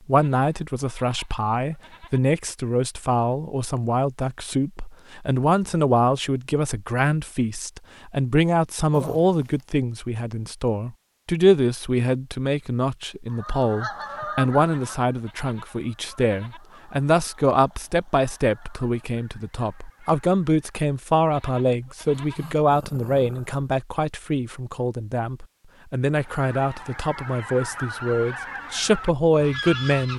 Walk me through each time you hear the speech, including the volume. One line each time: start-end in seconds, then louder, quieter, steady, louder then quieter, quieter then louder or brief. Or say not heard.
0.1-30.1 steady.